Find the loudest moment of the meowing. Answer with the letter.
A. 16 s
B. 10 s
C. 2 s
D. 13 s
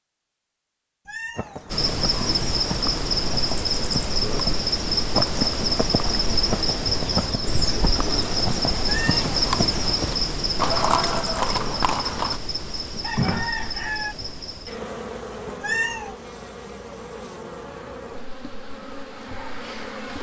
A.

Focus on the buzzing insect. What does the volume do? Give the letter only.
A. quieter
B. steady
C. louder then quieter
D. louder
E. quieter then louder
A.